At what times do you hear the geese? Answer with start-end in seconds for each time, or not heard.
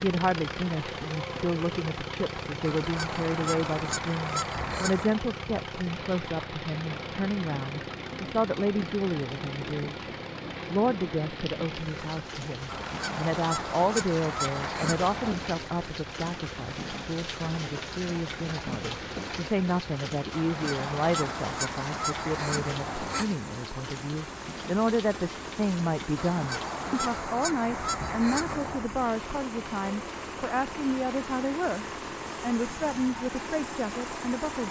2.6-5.2, 12.7-15.3, 20.3-23.2, 26.1-28.9.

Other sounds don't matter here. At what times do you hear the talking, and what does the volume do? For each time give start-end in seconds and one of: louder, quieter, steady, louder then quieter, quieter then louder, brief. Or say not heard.
0.0-34.6 steady.